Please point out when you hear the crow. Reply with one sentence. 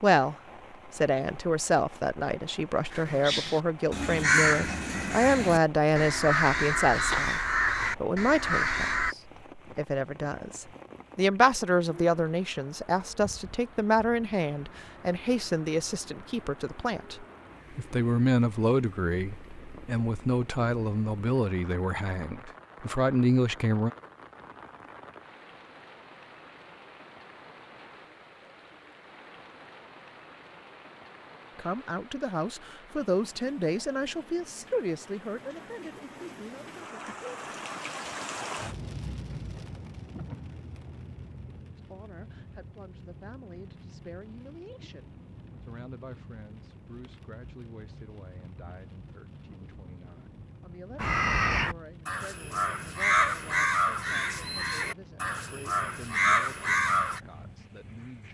You can hear the crow from 2.9 to 9.2 s and from 51.0 to 57.2 s.